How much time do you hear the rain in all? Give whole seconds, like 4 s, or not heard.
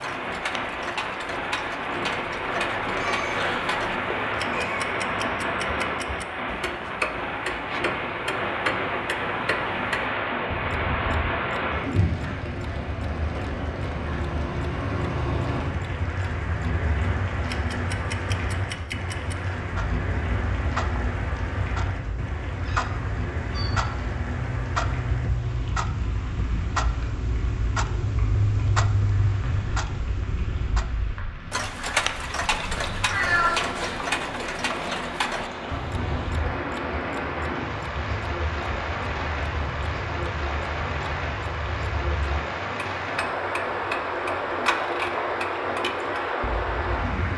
47 s.